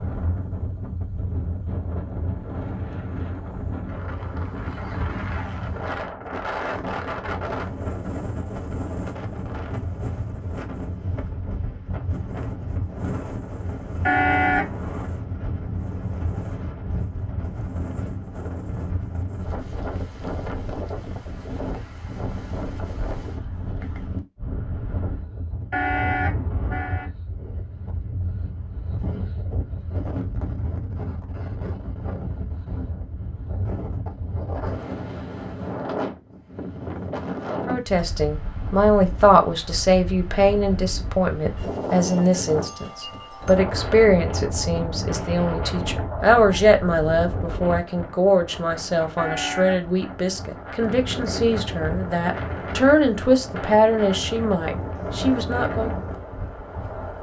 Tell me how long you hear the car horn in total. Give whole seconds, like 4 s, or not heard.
3 s.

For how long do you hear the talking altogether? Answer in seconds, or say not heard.
18 s.